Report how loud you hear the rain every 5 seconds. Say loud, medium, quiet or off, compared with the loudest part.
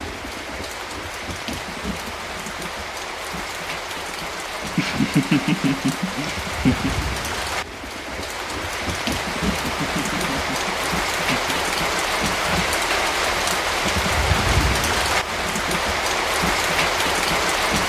medium, medium, loud, loud.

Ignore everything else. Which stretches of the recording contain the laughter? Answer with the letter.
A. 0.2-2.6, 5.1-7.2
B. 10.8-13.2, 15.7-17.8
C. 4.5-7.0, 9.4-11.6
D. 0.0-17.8
C.